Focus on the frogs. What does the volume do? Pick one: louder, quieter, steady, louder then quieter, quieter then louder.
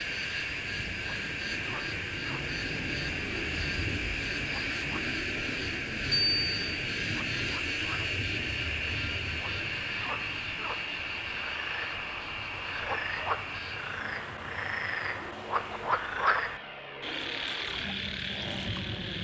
louder.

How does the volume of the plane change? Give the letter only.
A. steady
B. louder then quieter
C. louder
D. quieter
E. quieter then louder
D.